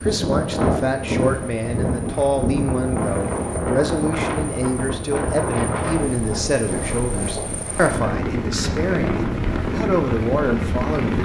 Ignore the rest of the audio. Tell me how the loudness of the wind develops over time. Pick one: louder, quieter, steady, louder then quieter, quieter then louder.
quieter.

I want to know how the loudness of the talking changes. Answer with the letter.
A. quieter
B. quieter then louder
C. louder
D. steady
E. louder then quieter
D.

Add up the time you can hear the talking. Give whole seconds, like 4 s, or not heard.
11 s.